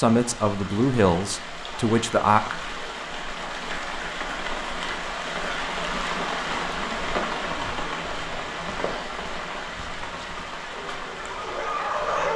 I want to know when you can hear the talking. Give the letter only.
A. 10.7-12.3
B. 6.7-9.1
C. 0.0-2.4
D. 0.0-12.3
C.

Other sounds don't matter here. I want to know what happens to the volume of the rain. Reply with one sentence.
The volume of the rain goes up, then down.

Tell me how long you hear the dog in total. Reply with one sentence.
You can hear the dog for 2 seconds altogether.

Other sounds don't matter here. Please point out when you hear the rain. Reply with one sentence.
You can hear the rain from 0.0 to 12.3 s.